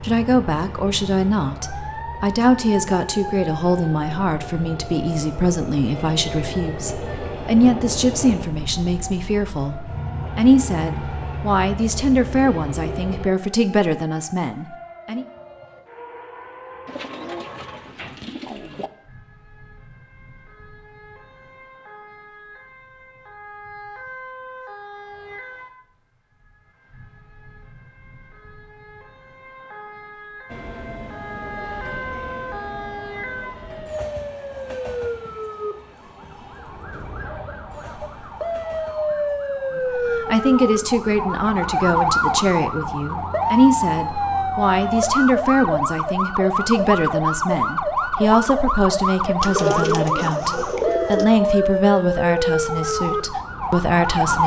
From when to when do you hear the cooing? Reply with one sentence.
You can hear the cooing from 16.9 to 18.9 s and from 49.4 to 51.2 s.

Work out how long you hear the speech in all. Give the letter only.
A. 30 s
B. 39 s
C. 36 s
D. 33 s
A.